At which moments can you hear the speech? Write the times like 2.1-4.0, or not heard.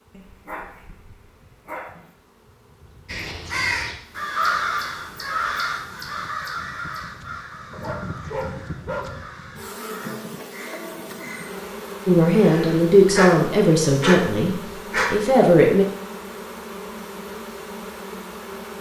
12.1-15.8.